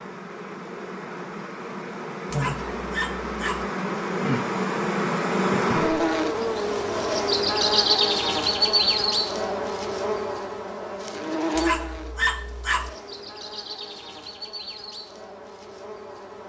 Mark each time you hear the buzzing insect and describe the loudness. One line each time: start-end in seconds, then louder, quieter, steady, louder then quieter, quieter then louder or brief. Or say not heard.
0.0-16.4 louder then quieter.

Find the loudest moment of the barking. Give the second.
12 s.